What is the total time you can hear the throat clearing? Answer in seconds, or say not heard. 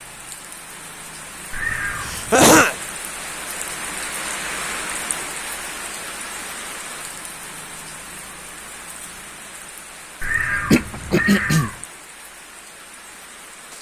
2 s.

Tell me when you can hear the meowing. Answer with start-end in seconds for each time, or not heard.
1.5-2.4, 10.2-11.8.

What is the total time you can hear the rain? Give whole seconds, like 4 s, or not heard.
14 s.